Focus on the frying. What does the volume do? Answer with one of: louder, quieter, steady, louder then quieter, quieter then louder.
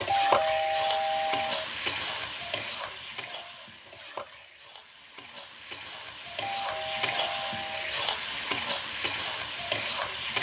quieter then louder.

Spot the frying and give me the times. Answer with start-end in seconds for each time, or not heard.
0.0-10.3.